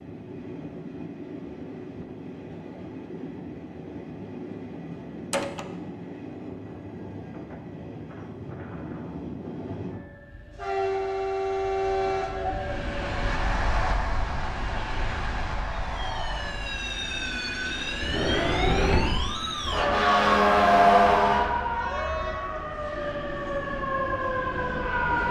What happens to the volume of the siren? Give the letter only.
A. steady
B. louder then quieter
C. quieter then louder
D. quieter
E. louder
B.